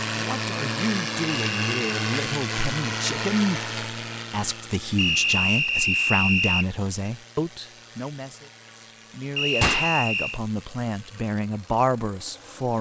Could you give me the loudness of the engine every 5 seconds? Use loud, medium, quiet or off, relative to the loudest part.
loud, quiet, quiet.